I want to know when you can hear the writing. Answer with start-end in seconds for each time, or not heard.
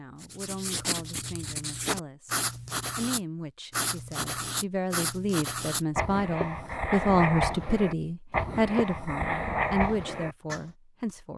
0.2-10.7.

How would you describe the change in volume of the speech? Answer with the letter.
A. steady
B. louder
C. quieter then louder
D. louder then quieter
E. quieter
D.